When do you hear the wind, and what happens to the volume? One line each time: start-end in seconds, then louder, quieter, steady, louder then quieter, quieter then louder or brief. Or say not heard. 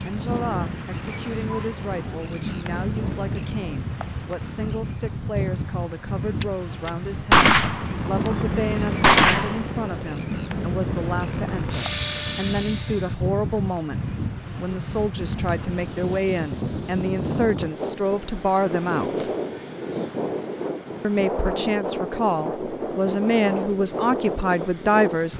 0.0-25.3 steady.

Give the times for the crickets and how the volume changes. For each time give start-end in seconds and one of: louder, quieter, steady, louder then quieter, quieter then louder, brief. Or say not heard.
not heard.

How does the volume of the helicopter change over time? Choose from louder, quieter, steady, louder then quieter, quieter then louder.
quieter then louder.